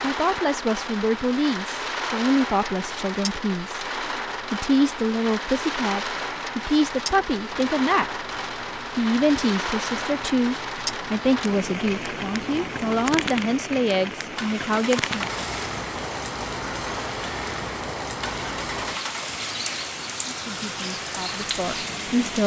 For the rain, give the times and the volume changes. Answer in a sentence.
You can hear the rain from 0.0 to 22.4 s, at a steady volume.